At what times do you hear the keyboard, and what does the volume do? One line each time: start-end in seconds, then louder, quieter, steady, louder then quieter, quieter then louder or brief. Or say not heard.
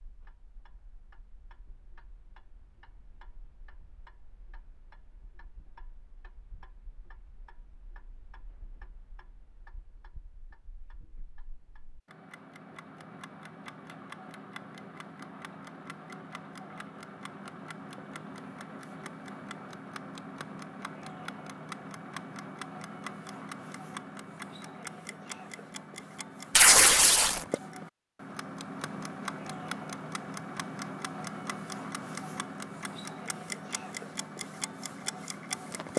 not heard.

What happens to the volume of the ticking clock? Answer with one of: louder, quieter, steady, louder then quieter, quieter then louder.
louder.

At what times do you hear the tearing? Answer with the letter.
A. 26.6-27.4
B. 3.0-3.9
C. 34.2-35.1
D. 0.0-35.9
A.